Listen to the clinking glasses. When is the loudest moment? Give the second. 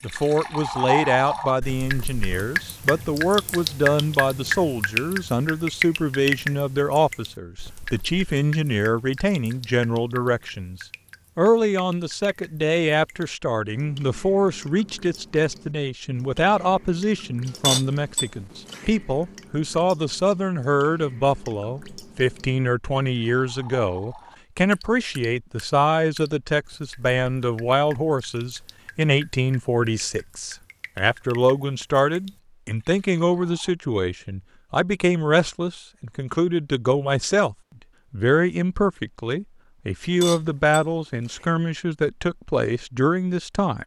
18 s.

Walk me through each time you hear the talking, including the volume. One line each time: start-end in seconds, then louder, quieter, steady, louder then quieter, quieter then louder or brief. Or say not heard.
0.0-43.8 steady.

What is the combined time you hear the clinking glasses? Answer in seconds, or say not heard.
3 s.